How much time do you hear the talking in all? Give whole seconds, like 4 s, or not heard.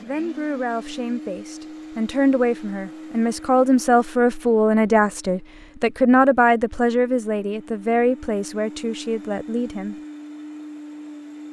10 s.